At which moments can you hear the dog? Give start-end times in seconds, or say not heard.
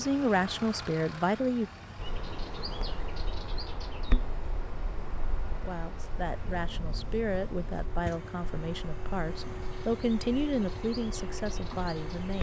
not heard.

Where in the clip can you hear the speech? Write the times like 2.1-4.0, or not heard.
0.0-1.7, 5.6-12.3.